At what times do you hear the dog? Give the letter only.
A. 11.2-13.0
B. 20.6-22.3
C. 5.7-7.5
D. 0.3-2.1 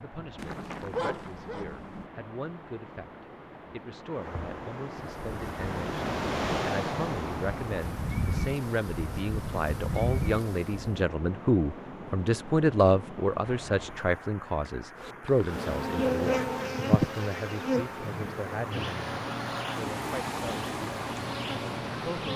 D.